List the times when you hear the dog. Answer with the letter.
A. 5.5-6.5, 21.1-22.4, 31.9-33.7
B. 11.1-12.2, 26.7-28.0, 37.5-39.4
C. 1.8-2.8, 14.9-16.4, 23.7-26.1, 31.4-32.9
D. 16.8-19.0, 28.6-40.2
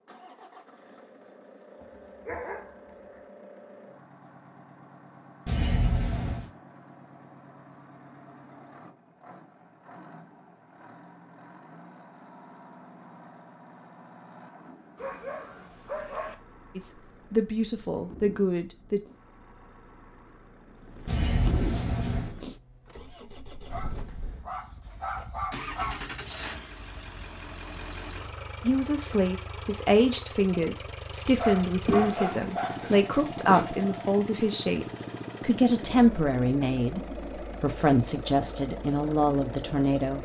C.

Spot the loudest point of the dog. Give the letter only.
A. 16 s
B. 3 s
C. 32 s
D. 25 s
C.